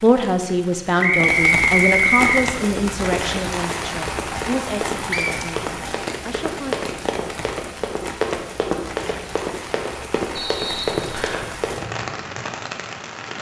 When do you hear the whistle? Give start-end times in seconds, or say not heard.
1.0-2.5, 5.1-5.5, 10.3-11.4.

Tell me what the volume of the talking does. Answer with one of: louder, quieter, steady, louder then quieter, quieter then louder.
quieter.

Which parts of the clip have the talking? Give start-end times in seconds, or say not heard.
0.0-6.8.